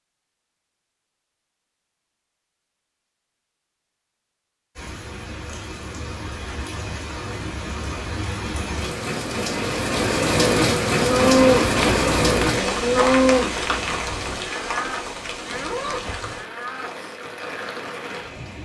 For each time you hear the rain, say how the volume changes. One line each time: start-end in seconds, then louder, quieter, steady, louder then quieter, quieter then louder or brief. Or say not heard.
4.8-18.5 louder then quieter.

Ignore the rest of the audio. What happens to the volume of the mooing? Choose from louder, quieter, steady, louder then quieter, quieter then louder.
quieter.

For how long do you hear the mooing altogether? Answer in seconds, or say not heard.
6 s.